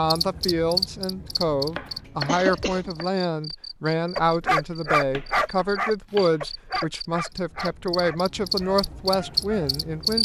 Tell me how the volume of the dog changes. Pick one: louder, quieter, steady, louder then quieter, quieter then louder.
quieter.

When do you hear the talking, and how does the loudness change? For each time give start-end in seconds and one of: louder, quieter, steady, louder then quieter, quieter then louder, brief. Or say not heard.
0.0-10.1 steady.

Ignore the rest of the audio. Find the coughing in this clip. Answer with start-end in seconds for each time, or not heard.
2.2-2.9.